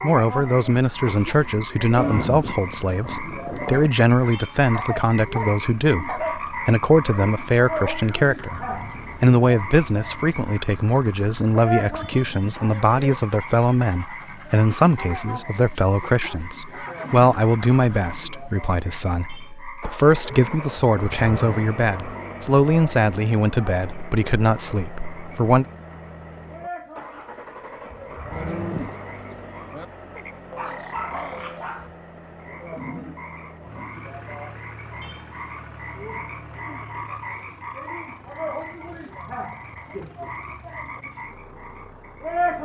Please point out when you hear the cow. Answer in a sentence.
The cow can be heard from 1.9 to 3.9 s and from 28.3 to 29.9 s.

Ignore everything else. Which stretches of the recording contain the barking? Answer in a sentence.
You can hear the barking from 4.7 to 6.5 s and from 30.6 to 31.9 s.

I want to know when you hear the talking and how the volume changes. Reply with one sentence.
The talking can be heard from 0.0 to 25.6 s, at a steady volume.